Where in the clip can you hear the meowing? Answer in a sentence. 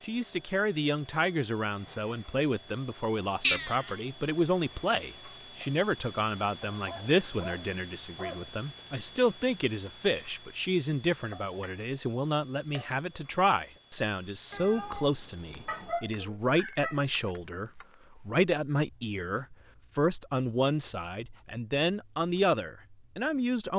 The meowing can be heard from 3.4 to 4.0 s and from 14.5 to 16.0 s.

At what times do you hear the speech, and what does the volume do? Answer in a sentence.
You can hear the speech from 0.0 to 23.7 s, at a steady volume.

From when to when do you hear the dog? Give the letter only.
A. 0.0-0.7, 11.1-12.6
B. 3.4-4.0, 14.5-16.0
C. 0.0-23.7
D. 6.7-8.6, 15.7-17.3
D.